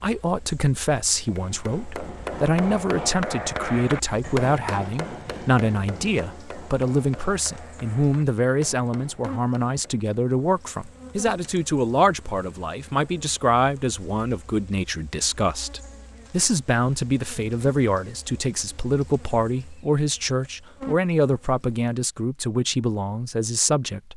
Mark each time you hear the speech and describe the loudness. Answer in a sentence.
The speech can be heard from 0.0 to 24.1 s, at a steady volume.